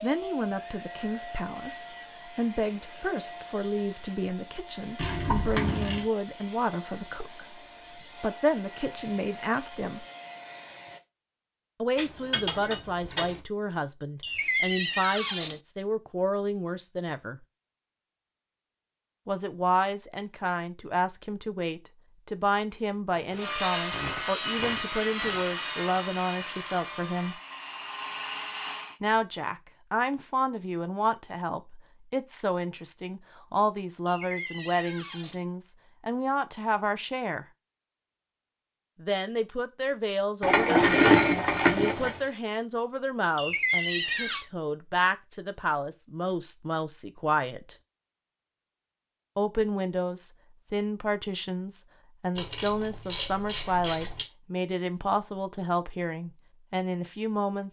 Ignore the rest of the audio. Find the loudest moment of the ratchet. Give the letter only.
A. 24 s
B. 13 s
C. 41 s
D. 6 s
C.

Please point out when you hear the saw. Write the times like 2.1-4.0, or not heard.
23.3-28.9.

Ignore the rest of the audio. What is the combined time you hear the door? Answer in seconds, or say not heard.
4 s.